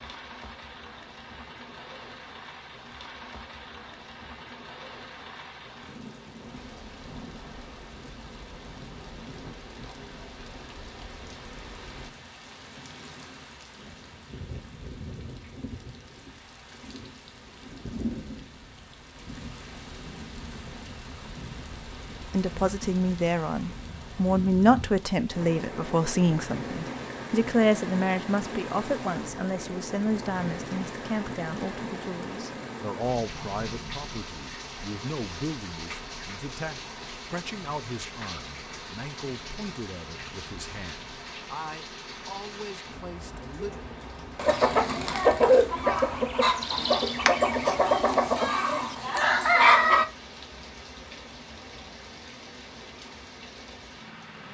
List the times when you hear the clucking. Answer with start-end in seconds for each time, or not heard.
44.4-50.0.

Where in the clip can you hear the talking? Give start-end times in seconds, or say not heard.
22.3-43.8.